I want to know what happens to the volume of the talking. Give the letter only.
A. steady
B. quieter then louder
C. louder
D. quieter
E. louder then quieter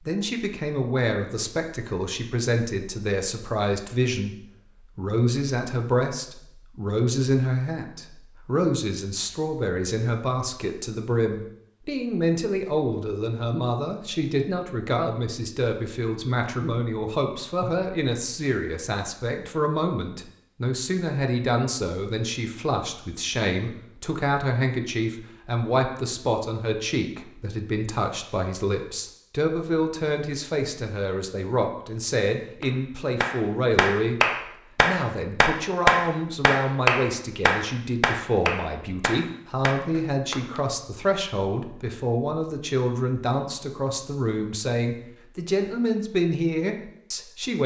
A.